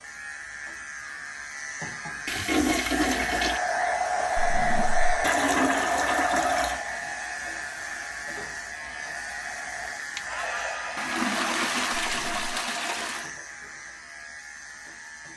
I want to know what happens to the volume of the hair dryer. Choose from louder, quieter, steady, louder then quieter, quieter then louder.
quieter then louder.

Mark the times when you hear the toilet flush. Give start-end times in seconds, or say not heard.
2.2-3.6, 5.2-6.8, 10.9-13.3.